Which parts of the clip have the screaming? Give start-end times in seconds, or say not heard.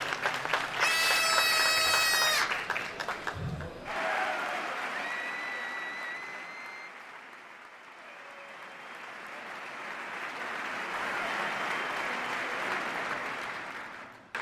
0.8-2.6, 5.0-6.9, 10.9-11.3.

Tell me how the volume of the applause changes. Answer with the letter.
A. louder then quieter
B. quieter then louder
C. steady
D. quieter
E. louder
B.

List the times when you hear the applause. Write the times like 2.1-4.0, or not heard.
0.0-14.3.